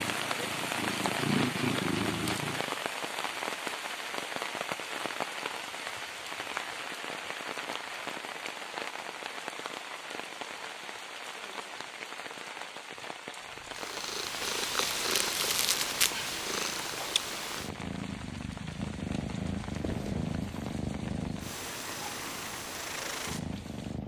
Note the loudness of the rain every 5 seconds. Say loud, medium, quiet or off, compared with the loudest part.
loud, loud, medium, medium, quiet.